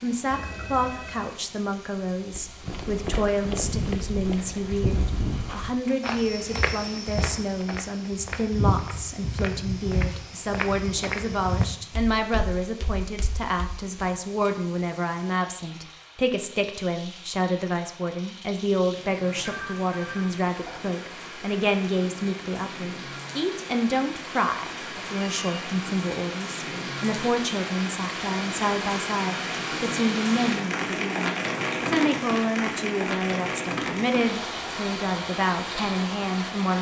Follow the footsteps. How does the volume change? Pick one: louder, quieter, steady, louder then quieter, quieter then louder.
steady.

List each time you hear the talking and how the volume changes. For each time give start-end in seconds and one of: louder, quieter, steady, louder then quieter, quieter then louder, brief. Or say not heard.
0.0-36.7 steady.